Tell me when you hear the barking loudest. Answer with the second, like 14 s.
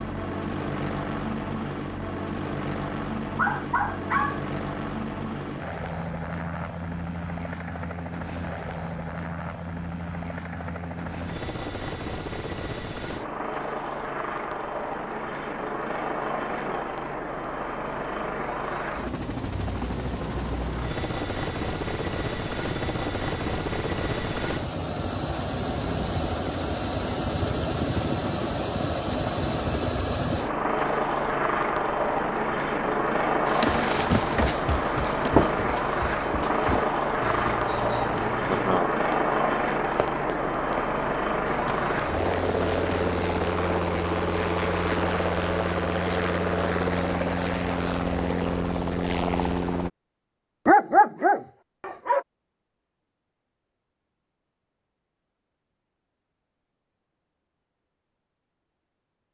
51 s.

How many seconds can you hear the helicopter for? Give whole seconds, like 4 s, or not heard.
50 s.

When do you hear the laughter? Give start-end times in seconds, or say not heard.
16.5-16.9, 38.5-38.9.